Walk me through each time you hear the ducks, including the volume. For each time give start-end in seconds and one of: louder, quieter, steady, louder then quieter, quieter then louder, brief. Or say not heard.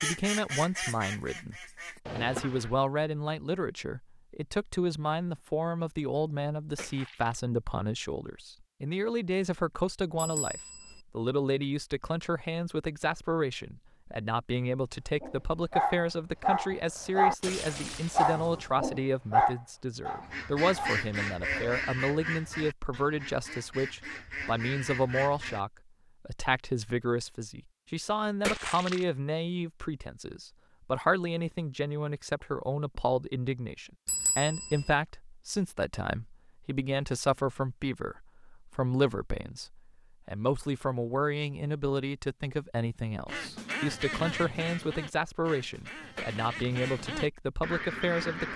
0.0-2.8 brief
20.1-25.6 quieter then louder
43.2-48.5 quieter then louder.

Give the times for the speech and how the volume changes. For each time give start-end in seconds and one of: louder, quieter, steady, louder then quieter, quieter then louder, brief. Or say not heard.
0.0-48.5 steady.